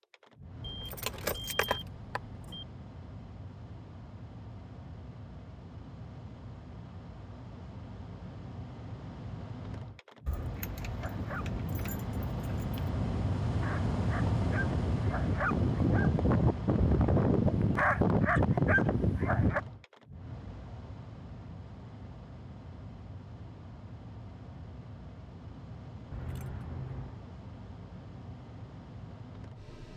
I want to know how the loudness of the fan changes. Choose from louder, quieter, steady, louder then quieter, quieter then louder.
louder then quieter.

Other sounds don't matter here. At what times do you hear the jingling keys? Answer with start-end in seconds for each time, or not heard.
0.6-2.6, 10.2-12.9, 26.1-27.3.